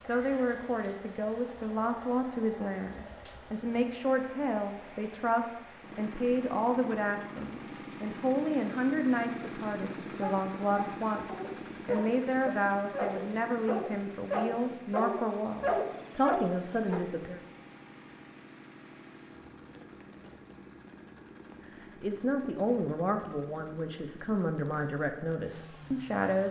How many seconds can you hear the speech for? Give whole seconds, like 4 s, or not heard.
22 s.